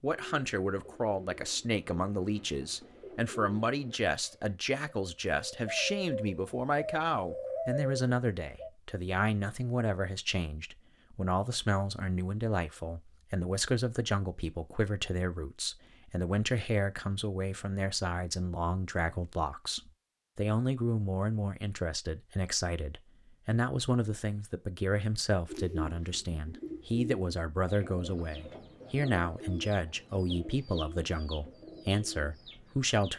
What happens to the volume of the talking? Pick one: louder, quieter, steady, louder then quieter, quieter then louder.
steady.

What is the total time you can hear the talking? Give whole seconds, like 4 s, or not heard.
33 s.